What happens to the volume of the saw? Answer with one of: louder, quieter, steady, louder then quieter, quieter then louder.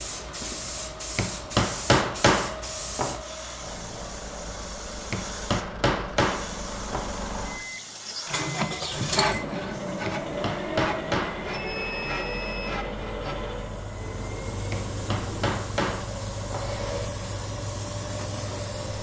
quieter.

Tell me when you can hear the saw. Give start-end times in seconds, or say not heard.
8.1-13.5.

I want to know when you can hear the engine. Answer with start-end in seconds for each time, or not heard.
0.0-18.9.